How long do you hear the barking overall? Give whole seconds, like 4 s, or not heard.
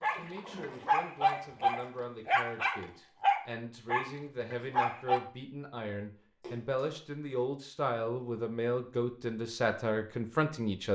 5 s.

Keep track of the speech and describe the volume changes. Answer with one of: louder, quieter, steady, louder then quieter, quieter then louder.
louder.